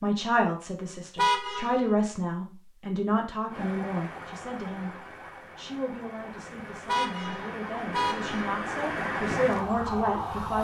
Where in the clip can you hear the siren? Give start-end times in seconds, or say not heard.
3.5-10.5.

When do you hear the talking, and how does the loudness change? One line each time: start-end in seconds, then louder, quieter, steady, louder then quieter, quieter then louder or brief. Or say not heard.
0.0-10.5 quieter then louder.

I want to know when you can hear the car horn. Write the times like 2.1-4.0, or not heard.
1.1-1.9, 6.8-8.6.